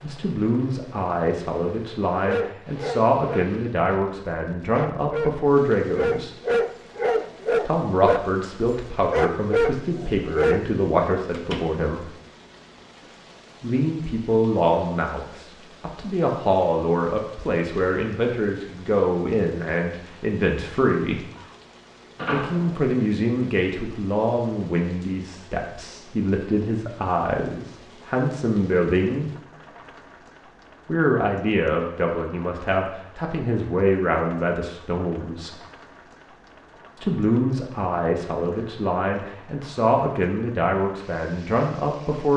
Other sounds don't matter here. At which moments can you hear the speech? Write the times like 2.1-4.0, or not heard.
0.0-6.3, 7.7-12.1, 13.6-21.2, 22.2-29.4, 30.9-35.5, 37.0-42.3.